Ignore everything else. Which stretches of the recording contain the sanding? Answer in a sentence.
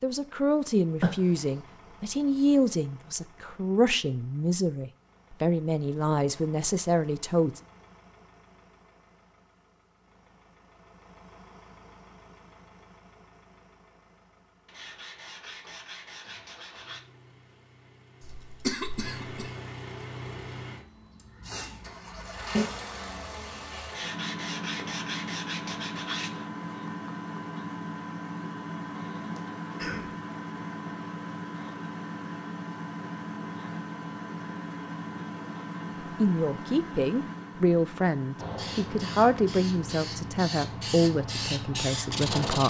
The sanding can be heard from 14.7 to 17.0 s and from 23.9 to 26.5 s.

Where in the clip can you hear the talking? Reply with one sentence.
The talking can be heard from 0.0 to 7.6 s and from 36.1 to 42.6 s.